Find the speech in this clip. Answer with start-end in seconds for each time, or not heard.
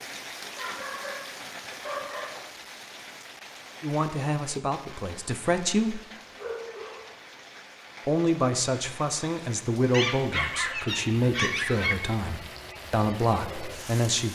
3.8-6.0, 8.1-14.2.